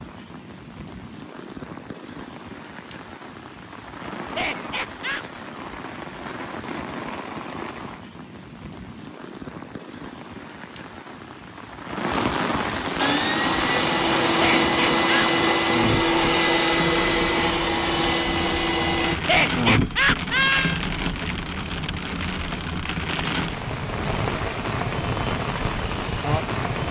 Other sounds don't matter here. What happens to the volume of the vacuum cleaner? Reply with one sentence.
The volume of the vacuum cleaner stays about the same.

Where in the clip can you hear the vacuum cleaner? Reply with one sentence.
The vacuum cleaner can be heard from 12.9 to 19.2 s.